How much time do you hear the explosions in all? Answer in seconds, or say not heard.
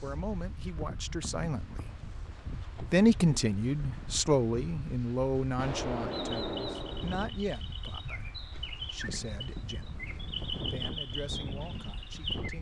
2 s.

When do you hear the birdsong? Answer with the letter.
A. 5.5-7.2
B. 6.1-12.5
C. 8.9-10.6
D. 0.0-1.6
B.